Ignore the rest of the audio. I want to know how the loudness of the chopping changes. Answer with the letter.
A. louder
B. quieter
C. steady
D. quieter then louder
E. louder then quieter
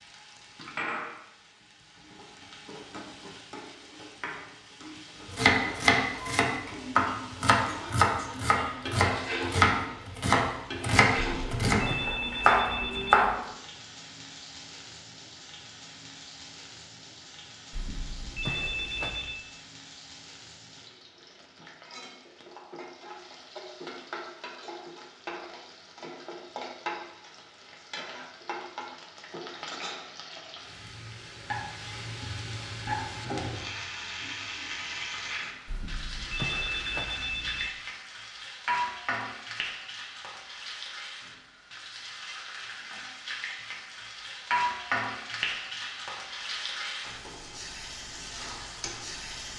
C.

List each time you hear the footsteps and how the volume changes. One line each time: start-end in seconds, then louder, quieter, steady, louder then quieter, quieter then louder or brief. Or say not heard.
not heard.